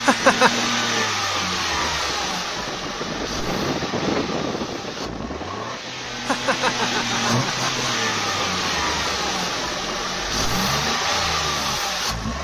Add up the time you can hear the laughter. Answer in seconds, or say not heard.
2 s.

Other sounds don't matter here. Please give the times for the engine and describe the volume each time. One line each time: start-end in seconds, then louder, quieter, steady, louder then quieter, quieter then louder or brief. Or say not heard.
0.0-12.3 quieter then louder.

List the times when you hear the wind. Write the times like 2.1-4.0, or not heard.
0.0-10.0.